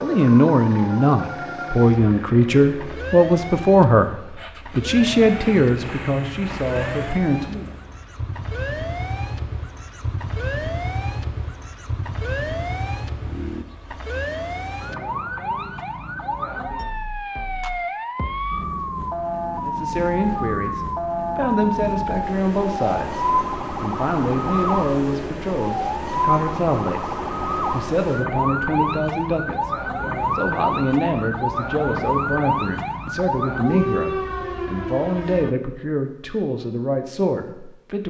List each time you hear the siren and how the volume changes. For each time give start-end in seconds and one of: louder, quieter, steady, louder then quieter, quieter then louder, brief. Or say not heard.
0.0-35.5 louder.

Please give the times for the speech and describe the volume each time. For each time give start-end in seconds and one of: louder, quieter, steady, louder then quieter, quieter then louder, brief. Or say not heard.
0.0-7.7 quieter
19.6-38.0 steady.